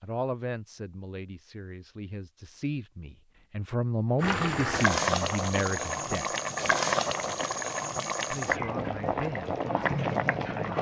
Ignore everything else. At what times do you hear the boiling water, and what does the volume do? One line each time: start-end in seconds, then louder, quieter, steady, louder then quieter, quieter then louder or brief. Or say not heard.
4.2-10.7 steady.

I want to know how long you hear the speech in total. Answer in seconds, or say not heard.
9 s.